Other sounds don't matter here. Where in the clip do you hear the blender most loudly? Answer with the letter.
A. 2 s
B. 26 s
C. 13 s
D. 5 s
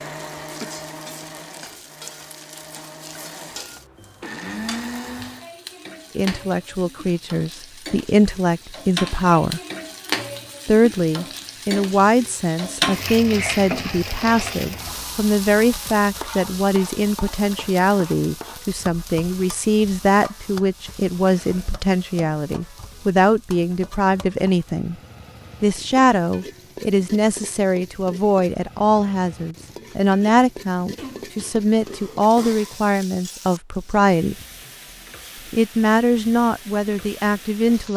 D.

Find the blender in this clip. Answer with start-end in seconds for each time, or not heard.
0.0-5.5.